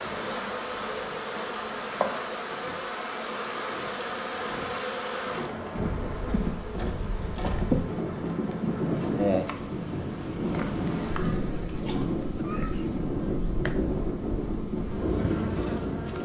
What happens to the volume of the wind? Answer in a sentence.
The volume of the wind goes up.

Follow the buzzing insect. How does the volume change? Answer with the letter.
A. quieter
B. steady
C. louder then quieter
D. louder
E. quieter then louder
A.